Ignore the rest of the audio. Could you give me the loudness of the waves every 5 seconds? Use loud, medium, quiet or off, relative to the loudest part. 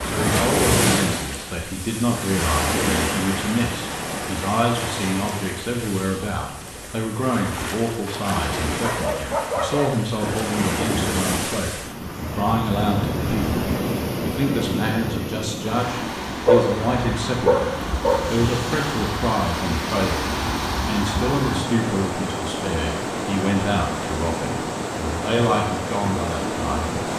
loud, medium, loud, loud, loud, loud.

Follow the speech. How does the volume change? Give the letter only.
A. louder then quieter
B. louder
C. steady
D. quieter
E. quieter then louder
C.